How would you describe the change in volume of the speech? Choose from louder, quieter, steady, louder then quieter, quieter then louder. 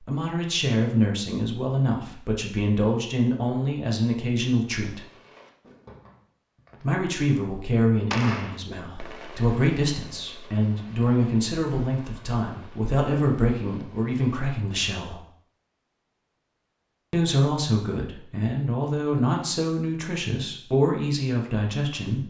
steady.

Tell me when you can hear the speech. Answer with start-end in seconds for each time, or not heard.
0.0-5.0, 6.8-15.2, 17.1-22.2.